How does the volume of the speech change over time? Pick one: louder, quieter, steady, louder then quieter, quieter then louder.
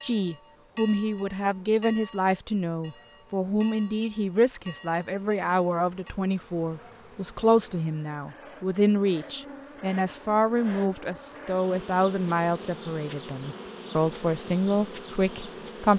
steady.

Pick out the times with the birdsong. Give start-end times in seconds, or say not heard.
not heard.